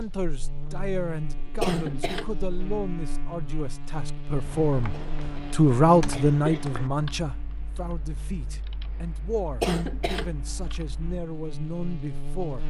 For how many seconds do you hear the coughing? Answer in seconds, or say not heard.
4 s.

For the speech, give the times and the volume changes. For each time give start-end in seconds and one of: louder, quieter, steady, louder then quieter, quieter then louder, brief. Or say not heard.
0.0-12.6 louder then quieter.